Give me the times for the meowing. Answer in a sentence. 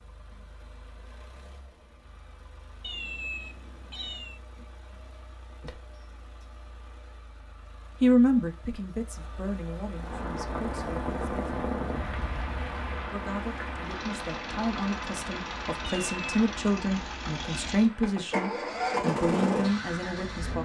You can hear the meowing from 2.8 to 4.4 s and from 15.8 to 16.2 s.